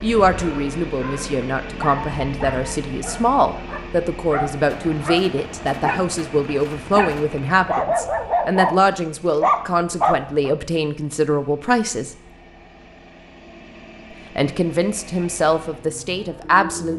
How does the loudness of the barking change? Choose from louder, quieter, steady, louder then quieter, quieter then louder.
louder.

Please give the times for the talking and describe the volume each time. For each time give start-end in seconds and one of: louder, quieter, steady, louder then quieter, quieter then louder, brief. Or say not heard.
0.0-12.1 steady
14.3-16.9 brief.